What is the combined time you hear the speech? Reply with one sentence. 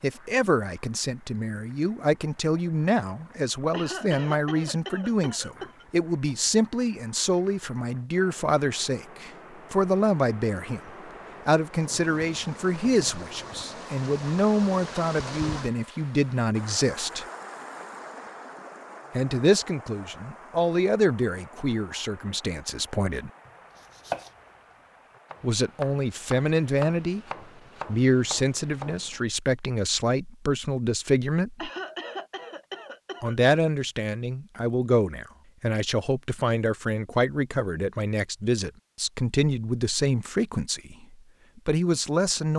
The speech can be heard for 36 seconds in total.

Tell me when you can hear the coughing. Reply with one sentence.
You can hear the coughing from 3.7 to 5.8 s and from 31.6 to 33.4 s.